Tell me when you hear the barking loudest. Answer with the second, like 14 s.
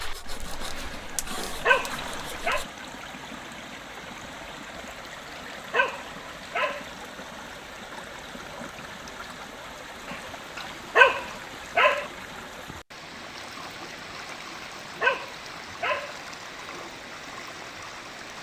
11 s.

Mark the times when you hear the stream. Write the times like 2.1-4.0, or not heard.
0.0-18.3.